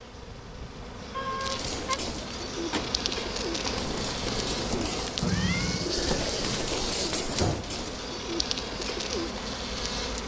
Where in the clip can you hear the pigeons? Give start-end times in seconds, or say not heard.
1.5-9.5.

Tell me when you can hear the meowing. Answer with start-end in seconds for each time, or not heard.
1.1-1.9, 5.2-5.9.